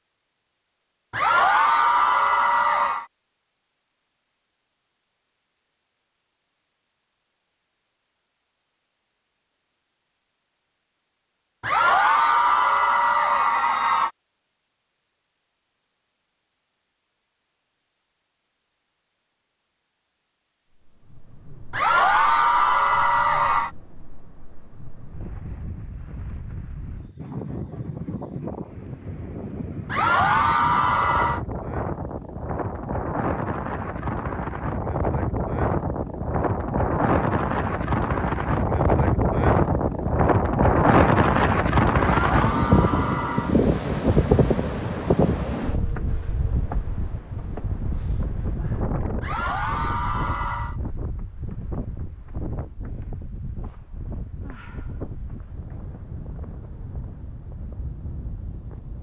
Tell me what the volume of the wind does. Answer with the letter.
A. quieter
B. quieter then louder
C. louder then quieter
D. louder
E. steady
C.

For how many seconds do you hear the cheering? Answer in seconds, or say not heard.
11 s.